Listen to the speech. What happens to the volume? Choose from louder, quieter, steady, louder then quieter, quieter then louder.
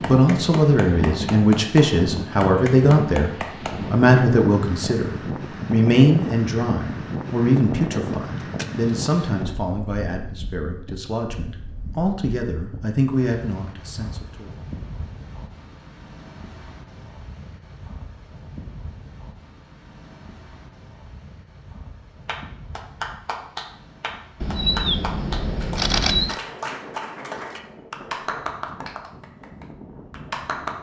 quieter.